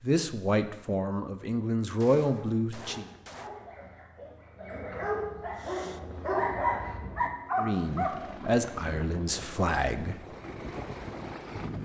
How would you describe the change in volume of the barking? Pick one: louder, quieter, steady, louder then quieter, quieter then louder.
louder.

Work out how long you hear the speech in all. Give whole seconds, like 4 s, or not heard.
6 s.